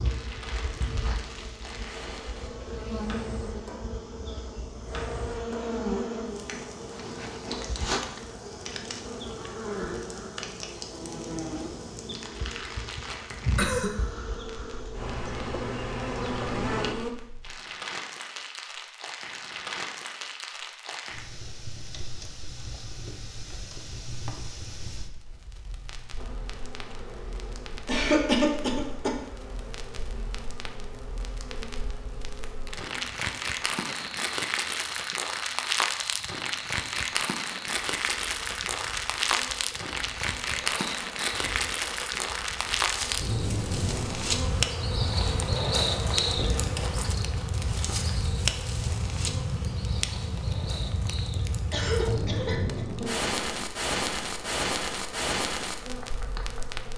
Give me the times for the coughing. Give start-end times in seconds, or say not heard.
13.4-13.9, 27.9-29.1, 51.7-52.9.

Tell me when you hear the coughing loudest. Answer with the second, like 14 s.
28 s.